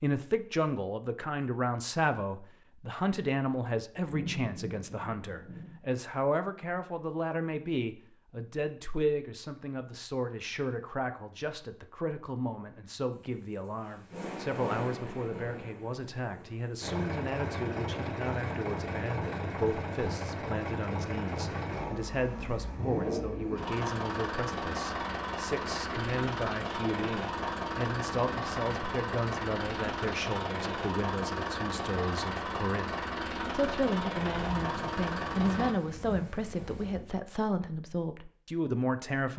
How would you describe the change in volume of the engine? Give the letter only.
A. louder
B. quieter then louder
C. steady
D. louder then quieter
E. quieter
C.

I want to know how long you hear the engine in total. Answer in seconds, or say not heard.
19 s.